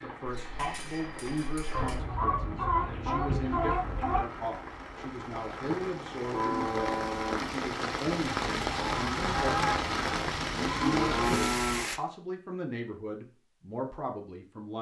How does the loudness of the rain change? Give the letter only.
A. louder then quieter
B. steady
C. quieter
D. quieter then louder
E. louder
E.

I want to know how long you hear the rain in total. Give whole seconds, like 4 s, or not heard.
12 s.